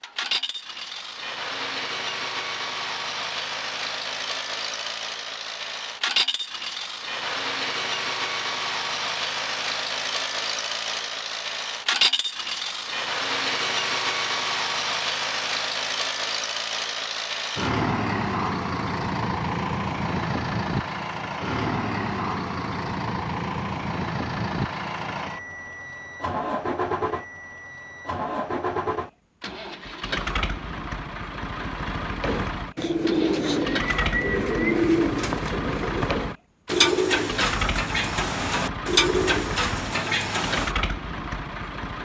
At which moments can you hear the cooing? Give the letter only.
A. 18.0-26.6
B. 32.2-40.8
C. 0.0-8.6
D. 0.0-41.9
B.